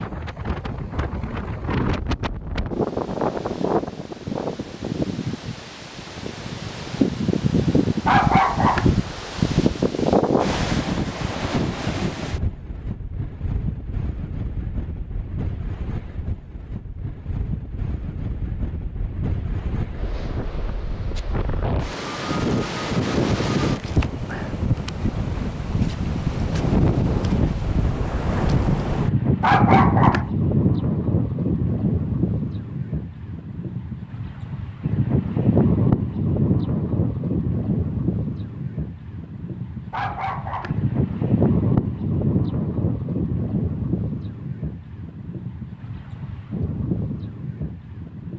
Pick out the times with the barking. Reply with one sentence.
The barking can be heard from 8.1 to 8.9 s, from 29.4 to 30.3 s and from 39.9 to 40.8 s.